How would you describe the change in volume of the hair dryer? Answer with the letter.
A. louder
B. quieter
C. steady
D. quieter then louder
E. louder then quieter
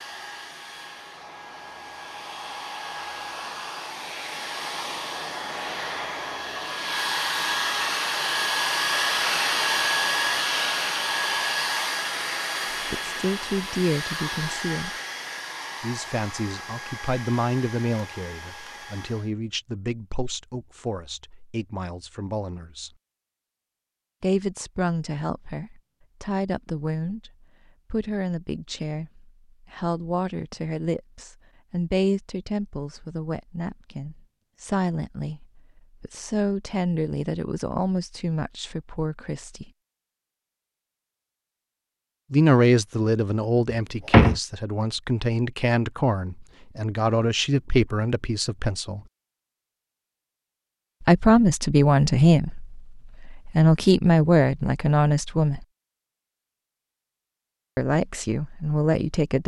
E.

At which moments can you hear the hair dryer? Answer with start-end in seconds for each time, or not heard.
0.0-19.3.